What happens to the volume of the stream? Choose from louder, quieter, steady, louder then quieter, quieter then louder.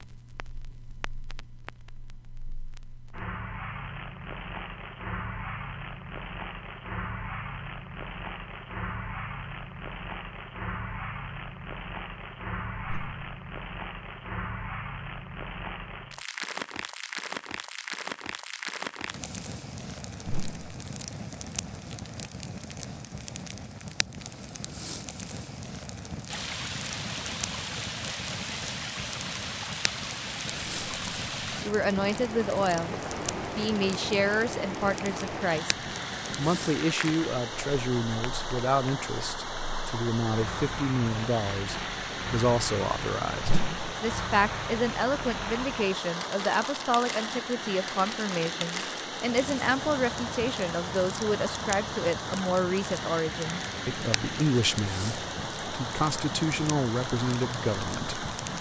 steady.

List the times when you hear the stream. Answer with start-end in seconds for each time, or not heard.
26.2-58.5.